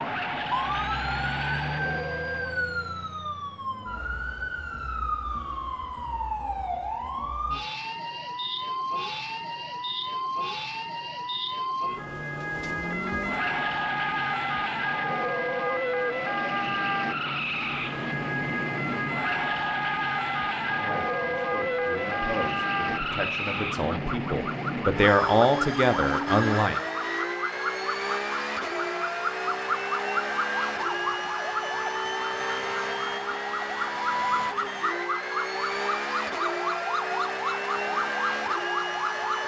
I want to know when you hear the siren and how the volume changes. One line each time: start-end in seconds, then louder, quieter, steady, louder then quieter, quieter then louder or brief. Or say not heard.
0.1-39.4 steady.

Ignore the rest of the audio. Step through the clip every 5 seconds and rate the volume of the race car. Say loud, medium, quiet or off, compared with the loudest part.
loud, off, loud, loud, loud, loud, loud, loud.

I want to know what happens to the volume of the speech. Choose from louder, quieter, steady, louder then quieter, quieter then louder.
louder.